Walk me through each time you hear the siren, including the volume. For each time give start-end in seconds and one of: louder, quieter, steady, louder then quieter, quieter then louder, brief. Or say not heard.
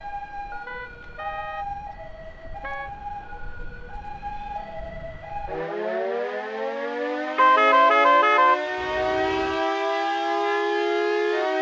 0.0-11.5 louder.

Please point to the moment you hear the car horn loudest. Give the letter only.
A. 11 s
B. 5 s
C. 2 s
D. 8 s
D.